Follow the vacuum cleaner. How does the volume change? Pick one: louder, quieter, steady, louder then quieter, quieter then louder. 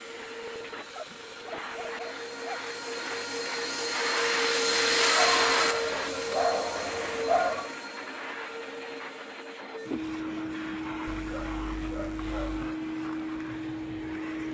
louder then quieter.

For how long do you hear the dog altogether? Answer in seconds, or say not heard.
6 s.